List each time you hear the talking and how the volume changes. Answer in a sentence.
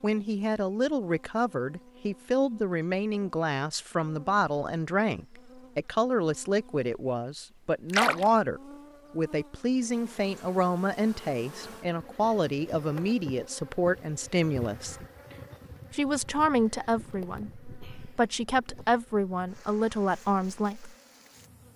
You can hear the talking from 0.0 to 14.9 s, at a steady volume; and from 15.9 to 20.9 s, getting quieter then louder.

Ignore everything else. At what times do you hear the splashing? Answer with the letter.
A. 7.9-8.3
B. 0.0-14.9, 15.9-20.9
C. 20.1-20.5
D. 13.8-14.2
A.